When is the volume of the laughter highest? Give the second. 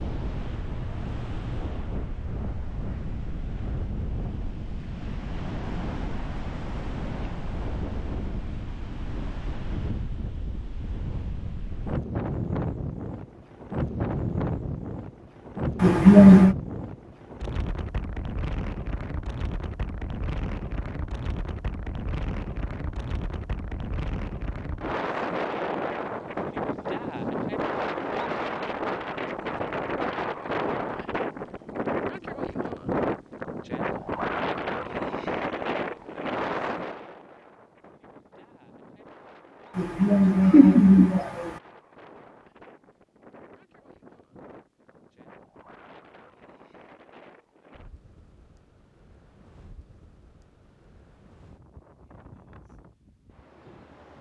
16 s.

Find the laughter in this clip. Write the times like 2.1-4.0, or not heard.
15.8-16.6, 39.8-41.5.